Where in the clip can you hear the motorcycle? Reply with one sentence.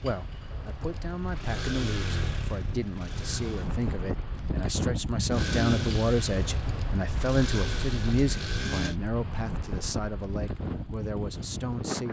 You can hear the motorcycle from 0.0 to 3.7 s and from 5.3 to 9.0 s.